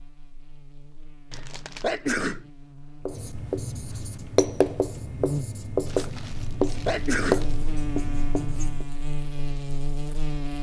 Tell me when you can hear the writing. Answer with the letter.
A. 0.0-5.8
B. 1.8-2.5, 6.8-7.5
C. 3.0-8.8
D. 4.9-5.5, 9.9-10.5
C.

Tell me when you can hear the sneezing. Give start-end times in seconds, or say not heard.
1.8-2.5, 6.8-7.5.